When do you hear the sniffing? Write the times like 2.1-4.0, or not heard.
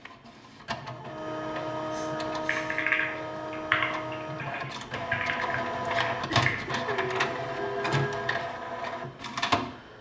1.9-2.9, 5.8-8.4.